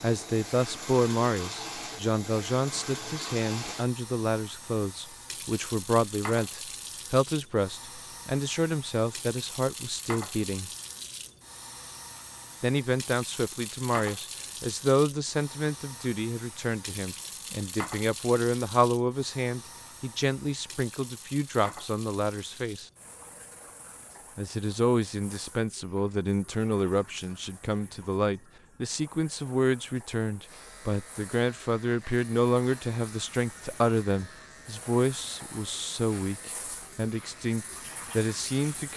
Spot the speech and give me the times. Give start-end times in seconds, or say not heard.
0.0-10.7, 12.6-22.9, 24.4-38.9.